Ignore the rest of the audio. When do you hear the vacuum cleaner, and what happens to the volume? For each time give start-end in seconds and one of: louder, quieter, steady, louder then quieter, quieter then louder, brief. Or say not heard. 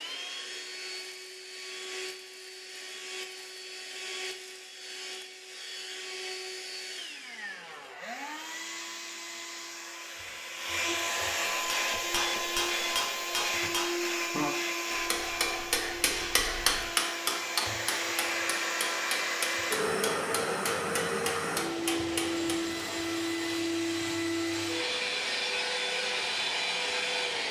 0.0-27.4 louder.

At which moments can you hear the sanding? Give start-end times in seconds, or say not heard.
not heard.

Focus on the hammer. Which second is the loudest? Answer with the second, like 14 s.
17 s.